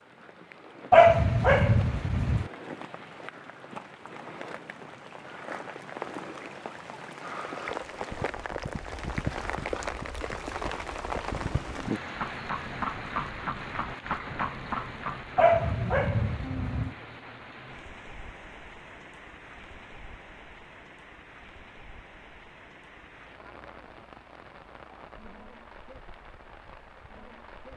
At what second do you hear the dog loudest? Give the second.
1 s.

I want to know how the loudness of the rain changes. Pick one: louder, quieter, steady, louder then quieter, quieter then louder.
louder then quieter.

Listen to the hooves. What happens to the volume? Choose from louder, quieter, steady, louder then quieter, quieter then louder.
quieter then louder.